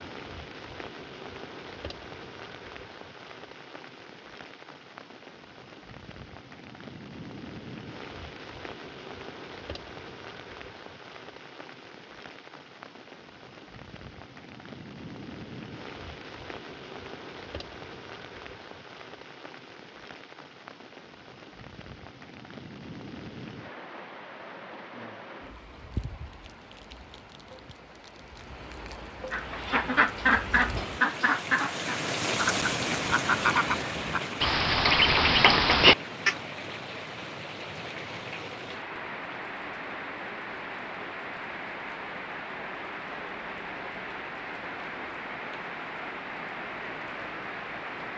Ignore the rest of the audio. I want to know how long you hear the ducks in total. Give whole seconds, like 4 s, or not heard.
7 s.